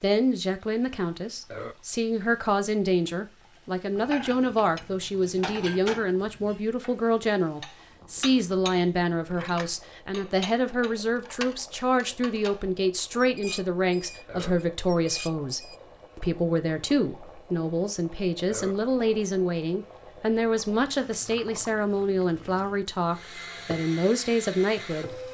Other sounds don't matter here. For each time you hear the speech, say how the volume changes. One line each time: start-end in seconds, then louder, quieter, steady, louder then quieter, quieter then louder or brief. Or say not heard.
0.0-25.2 steady.